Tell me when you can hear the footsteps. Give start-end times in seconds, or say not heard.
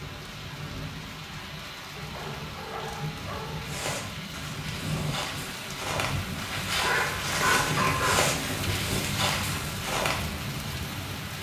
3.6-10.2.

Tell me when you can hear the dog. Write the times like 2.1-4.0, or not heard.
1.9-3.9, 6.7-8.2.